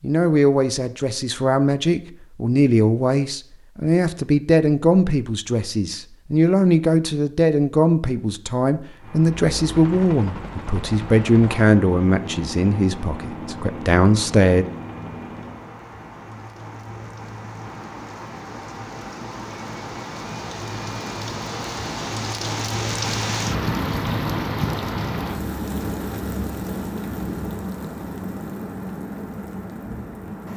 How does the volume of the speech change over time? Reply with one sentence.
The volume of the speech stays about the same.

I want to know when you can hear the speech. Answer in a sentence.
The speech can be heard from 0.0 to 14.7 s.